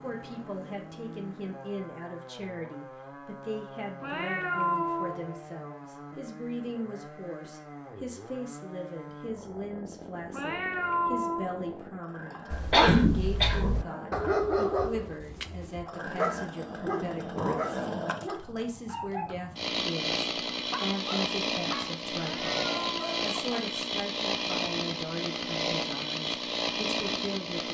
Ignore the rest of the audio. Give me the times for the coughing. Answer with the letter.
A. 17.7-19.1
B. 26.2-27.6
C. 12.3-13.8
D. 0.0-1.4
C.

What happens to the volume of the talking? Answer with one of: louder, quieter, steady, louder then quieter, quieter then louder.
steady.